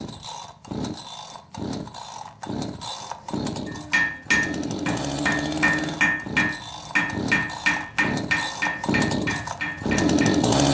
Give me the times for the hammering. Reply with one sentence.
You can hear the hammering from 3.6 to 10.4 s.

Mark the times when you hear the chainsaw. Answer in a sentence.
You can hear the chainsaw from 0.0 to 10.7 s.